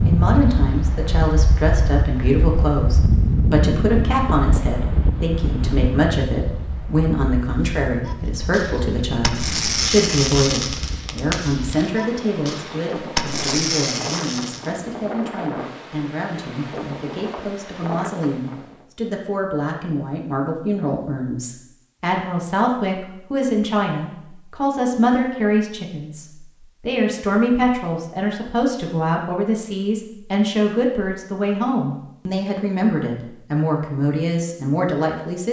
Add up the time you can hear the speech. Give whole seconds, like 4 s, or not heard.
35 s.